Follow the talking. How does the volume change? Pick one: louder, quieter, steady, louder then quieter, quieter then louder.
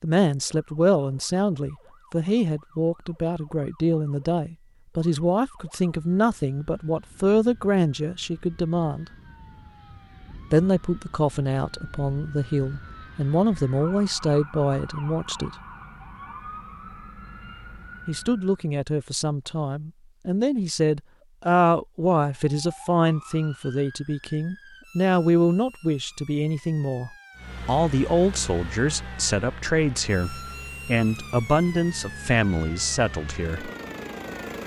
steady.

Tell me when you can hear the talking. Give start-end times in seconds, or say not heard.
0.0-9.1, 10.5-15.5, 18.1-33.7.